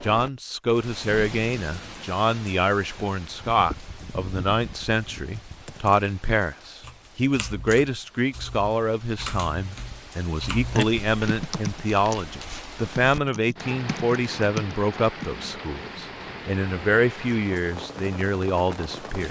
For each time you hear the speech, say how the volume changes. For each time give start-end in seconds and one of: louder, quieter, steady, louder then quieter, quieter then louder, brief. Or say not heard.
0.0-19.2 steady.